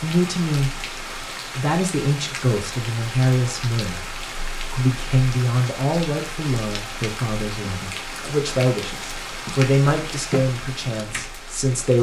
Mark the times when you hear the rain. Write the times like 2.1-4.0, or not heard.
0.0-11.9.